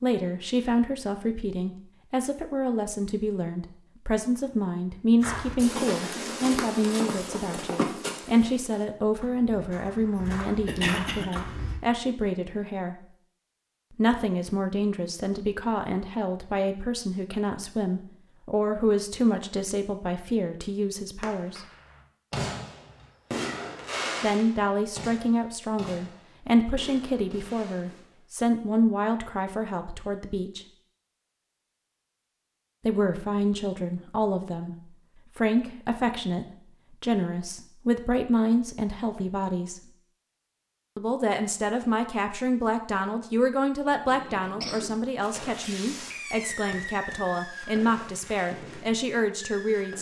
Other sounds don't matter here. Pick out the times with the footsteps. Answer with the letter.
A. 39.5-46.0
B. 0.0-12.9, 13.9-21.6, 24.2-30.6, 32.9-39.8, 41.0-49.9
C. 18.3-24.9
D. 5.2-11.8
D.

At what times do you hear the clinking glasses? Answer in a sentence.
You can't hear the clinking glasses here.